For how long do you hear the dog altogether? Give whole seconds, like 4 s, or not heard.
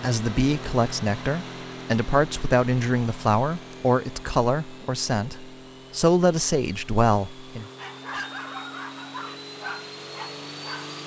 3 s.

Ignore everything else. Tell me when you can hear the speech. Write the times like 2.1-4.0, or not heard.
0.0-7.7.